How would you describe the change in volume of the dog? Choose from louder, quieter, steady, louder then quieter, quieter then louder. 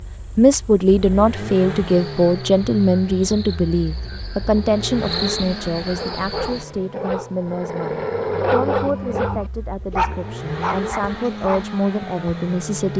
louder then quieter.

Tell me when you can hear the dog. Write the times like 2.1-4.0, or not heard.
5.8-11.8.